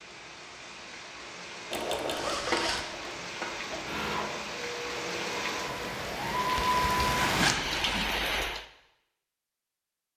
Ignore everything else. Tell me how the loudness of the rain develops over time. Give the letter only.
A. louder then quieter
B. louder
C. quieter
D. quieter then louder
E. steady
B.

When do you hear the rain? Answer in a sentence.
You can hear the rain from 0.0 to 8.7 s.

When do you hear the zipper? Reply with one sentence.
You can hear the zipper from 2.1 to 2.9 s and from 6.5 to 8.2 s.